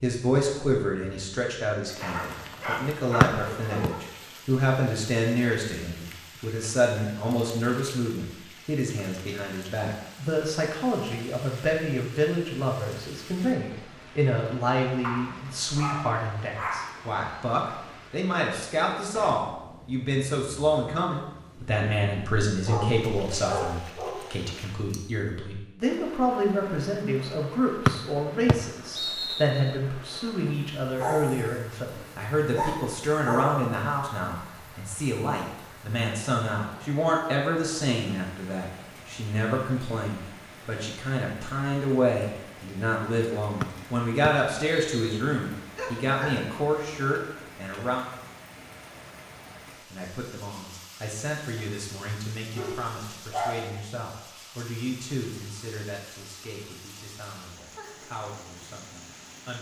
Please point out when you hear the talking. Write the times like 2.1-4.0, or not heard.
0.0-48.0, 49.9-59.5.